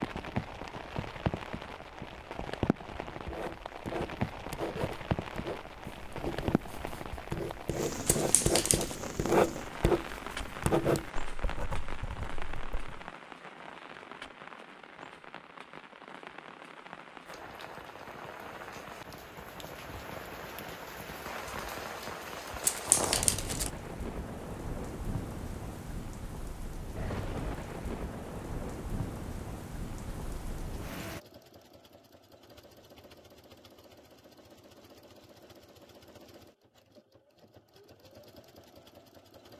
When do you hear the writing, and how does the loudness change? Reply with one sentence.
You can hear the writing from 3.2 to 13.1 s, getting louder then quieter.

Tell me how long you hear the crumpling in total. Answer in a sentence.
You can hear the crumpling for 2 seconds altogether.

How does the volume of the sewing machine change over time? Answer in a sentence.
The loudness of the sewing machine stays about the same.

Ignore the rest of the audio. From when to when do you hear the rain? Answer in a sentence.
You can hear the rain from 0.0 to 31.2 s.